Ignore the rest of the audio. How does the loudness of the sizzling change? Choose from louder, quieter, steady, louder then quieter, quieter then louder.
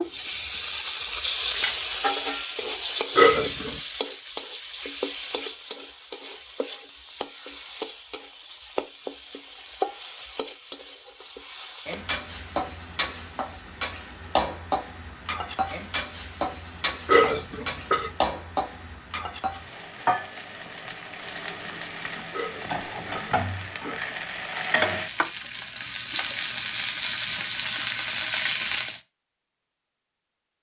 quieter then louder.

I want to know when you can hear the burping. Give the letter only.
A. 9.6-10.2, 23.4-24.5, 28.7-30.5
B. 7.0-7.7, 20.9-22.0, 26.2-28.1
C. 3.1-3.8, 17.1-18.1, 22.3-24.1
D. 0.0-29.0
C.